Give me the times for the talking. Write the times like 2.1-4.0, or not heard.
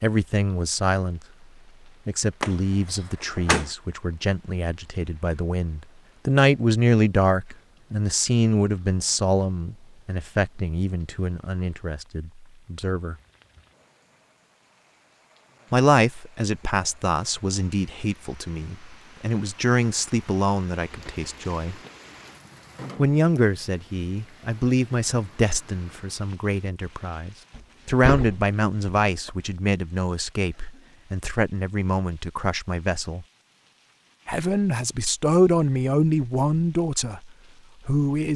0.0-1.2, 2.0-13.2, 15.7-21.8, 22.9-33.2, 34.2-38.3.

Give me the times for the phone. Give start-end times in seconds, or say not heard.
not heard.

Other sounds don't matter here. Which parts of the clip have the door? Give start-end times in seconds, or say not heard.
2.4-3.6, 27.6-29.3.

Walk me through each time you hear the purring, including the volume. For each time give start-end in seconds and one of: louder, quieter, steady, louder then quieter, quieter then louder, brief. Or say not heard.
not heard.